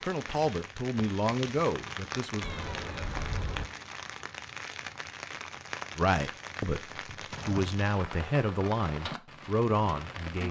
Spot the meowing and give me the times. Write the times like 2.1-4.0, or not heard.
2.4-3.6.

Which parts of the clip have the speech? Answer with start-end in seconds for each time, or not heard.
0.0-2.5, 6.0-10.4.